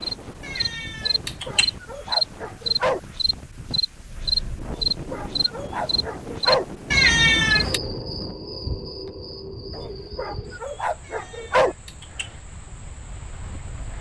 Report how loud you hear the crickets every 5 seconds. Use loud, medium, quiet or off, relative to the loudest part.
loud, medium, quiet.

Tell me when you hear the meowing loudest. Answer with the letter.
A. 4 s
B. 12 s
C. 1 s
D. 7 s
D.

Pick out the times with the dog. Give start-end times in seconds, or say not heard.
1.0-3.0, 4.7-6.7, 9.8-11.8.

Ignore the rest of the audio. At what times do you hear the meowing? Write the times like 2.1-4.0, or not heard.
0.4-1.8, 6.9-7.8, 11.1-12.3.